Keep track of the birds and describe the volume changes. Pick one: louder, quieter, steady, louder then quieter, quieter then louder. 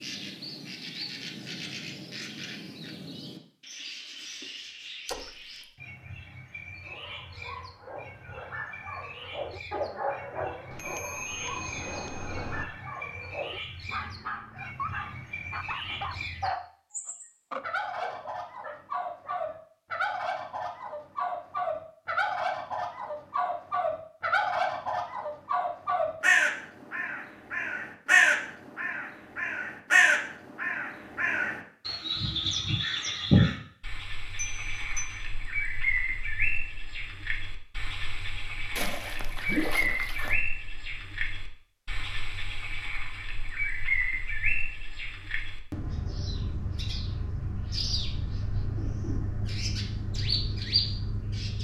louder then quieter.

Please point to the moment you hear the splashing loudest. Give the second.
40 s.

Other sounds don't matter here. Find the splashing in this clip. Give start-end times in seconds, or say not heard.
5.0-5.5, 38.8-40.4.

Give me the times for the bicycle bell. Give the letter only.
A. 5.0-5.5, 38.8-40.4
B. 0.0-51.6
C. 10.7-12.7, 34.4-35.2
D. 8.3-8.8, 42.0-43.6
C.